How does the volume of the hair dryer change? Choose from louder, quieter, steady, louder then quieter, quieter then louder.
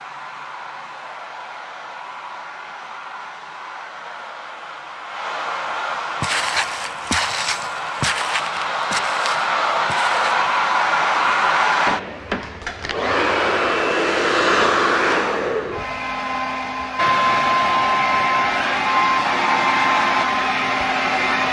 louder.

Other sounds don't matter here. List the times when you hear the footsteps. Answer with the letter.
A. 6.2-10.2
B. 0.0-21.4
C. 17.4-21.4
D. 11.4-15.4
A.